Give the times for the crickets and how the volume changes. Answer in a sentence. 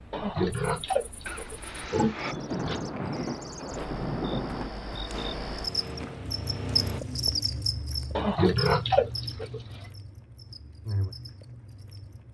You can hear the crickets from 0.0 to 12.2 s, getting louder then quieter.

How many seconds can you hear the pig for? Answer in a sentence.
You can hear the pig for 4 seconds altogether.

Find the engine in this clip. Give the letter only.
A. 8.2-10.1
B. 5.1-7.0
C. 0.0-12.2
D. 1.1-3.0
B.